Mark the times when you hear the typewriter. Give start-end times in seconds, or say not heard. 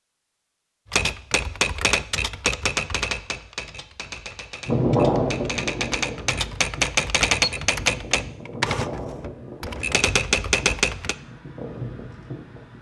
0.9-11.2.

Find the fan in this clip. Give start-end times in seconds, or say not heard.
4.7-12.7.